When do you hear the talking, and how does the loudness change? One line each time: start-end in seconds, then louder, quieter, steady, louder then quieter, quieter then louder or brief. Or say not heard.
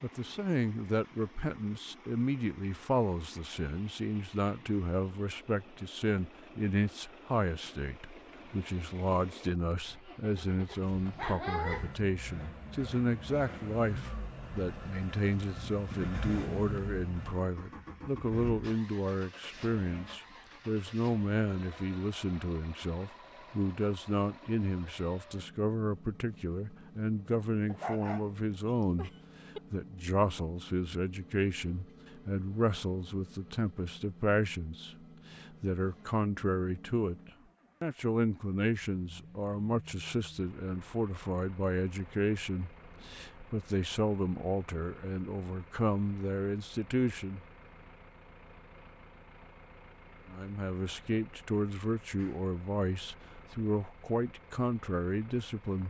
0.0-29.1 steady
29.7-47.4 steady
50.2-55.8 steady.